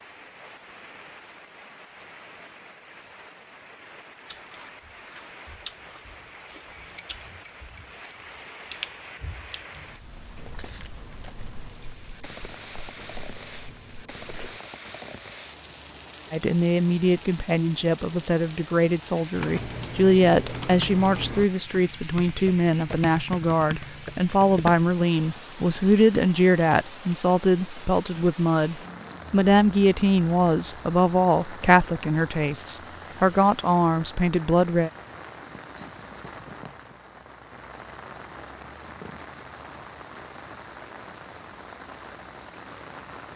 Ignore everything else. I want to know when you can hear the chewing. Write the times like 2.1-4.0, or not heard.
4.2-14.6.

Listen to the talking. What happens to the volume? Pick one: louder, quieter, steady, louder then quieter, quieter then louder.
steady.